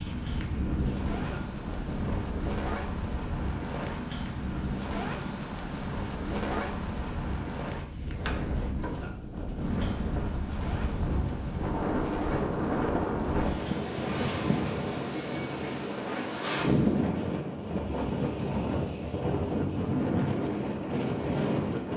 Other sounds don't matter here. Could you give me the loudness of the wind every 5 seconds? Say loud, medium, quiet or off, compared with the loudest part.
medium, medium, loud, loud, loud.